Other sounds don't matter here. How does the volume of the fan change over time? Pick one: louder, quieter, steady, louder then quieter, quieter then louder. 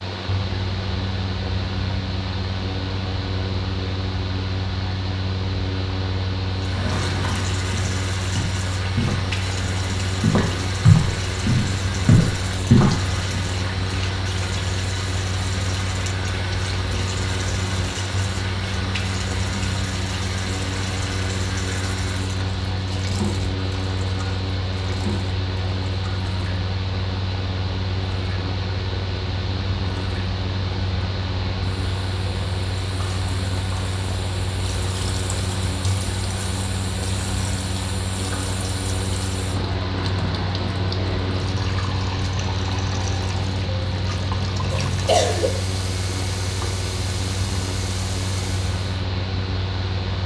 steady.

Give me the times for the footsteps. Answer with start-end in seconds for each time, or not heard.
6.7-13.4.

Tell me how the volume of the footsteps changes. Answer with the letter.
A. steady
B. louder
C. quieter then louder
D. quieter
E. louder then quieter
B.